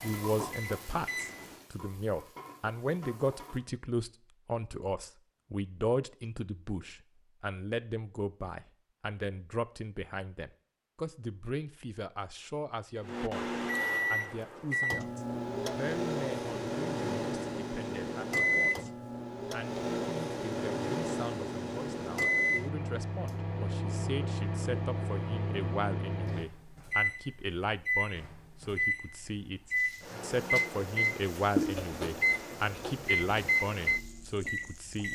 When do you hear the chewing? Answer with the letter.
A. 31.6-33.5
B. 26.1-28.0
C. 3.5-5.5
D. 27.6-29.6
A.